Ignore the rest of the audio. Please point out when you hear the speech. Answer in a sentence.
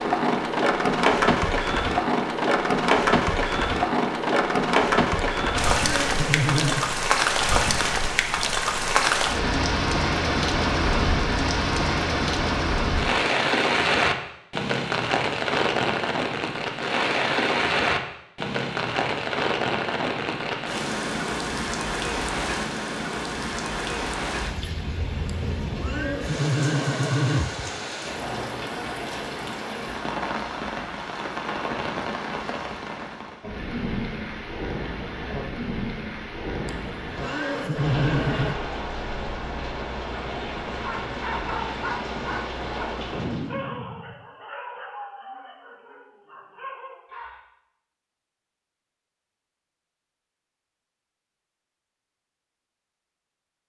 You can't hear the speech here.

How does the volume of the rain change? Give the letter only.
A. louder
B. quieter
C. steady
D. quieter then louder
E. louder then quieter
B.